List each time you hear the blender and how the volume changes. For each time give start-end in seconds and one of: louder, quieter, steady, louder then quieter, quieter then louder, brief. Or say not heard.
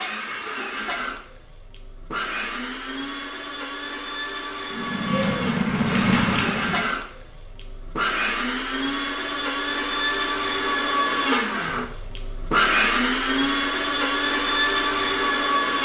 0.0-15.7 louder.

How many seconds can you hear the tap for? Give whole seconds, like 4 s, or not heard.
2 s.